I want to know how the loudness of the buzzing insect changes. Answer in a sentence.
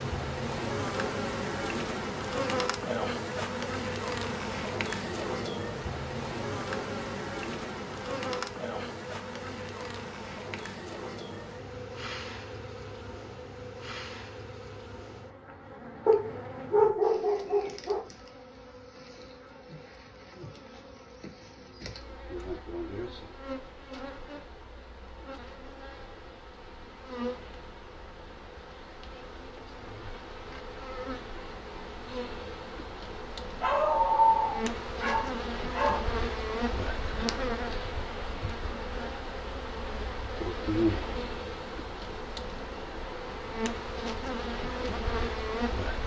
The volume of the buzzing insect goes down, then up.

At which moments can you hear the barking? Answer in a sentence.
You can hear the barking from 16.1 to 18.0 s and from 33.6 to 36.1 s.